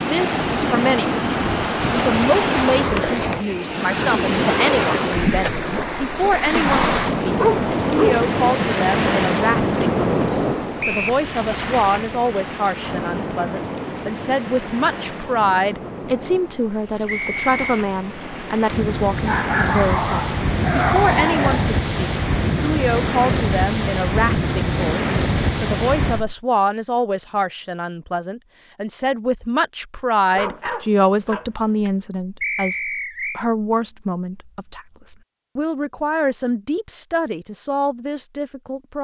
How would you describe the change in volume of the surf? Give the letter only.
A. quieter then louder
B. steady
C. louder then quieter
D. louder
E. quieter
A.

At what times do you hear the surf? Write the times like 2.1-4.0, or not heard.
0.0-26.4.